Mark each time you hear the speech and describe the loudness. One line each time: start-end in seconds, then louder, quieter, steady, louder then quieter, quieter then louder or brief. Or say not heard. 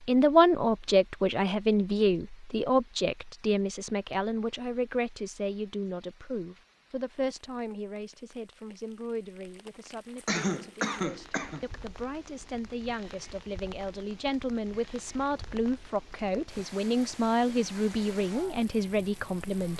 0.1-19.7 quieter then louder.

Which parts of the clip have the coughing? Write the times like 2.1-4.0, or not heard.
10.2-11.7.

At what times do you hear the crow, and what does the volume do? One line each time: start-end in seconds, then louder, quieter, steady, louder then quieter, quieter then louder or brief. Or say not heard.
not heard.